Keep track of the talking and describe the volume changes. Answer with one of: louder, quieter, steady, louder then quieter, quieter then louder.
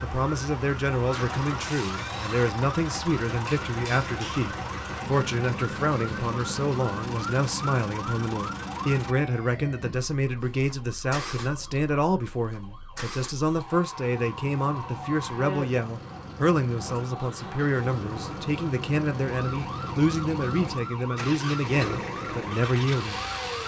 steady.